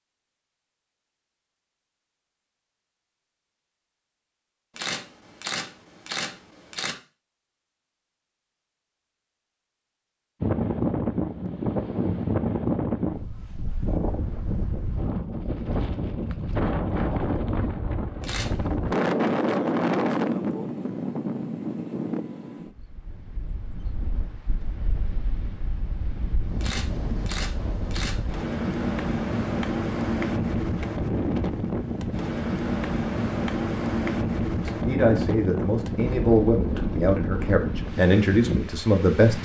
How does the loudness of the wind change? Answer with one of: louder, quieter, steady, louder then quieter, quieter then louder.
quieter then louder.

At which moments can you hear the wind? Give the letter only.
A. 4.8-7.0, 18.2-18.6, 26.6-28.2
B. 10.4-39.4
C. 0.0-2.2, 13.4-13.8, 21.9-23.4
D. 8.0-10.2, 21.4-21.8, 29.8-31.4
B.